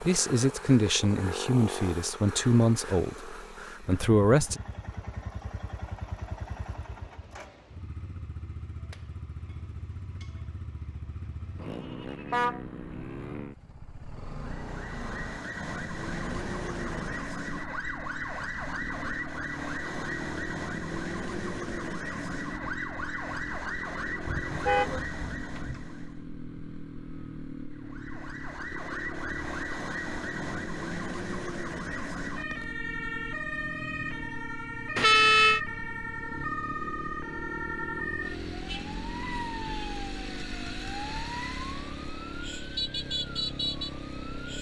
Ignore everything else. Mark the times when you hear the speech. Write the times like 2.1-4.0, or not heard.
0.0-4.6.